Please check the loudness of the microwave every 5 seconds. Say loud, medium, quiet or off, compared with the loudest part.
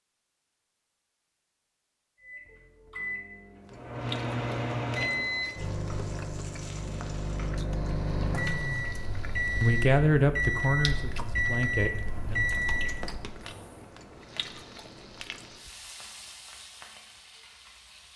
loud, loud, loud, off.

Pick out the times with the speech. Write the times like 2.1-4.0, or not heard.
9.6-12.4.